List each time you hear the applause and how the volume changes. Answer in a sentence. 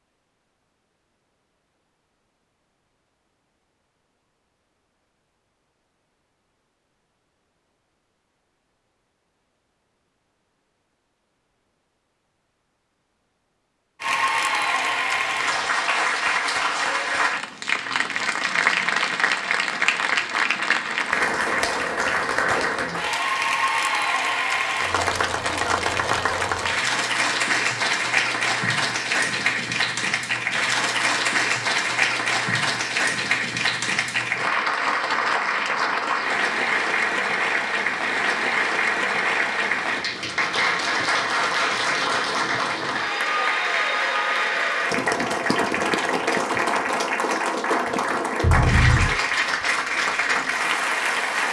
The applause can be heard from 14.0 to 51.4 s, at a steady volume.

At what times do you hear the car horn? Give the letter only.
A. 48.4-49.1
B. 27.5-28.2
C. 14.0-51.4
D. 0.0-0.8
A.